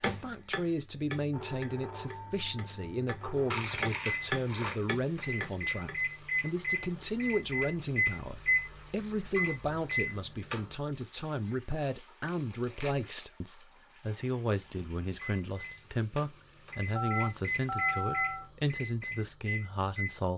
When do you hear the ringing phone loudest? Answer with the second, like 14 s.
18 s.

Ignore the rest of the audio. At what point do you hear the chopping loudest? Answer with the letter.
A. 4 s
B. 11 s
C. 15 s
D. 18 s
A.